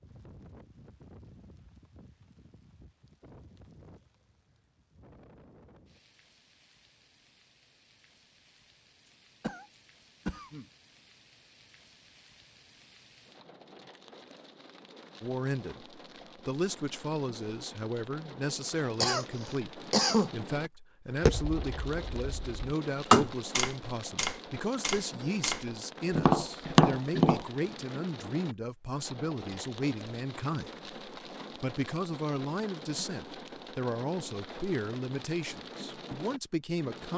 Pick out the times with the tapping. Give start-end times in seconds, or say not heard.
21.2-27.4.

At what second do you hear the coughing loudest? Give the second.
20 s.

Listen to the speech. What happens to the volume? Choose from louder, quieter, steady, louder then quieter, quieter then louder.
steady.